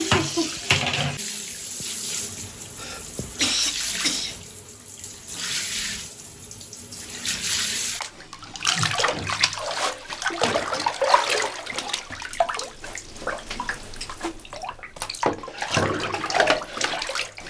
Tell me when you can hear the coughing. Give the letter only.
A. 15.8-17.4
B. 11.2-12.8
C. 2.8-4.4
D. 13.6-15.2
C.